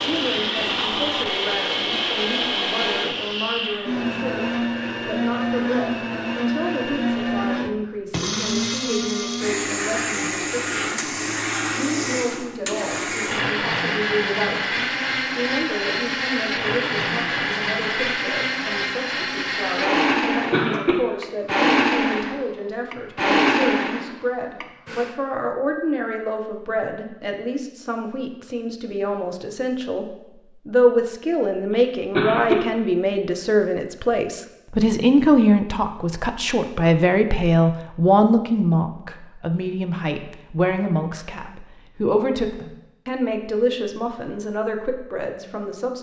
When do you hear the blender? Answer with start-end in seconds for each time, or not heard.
0.0-25.1.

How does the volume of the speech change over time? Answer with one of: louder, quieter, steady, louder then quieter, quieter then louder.
louder.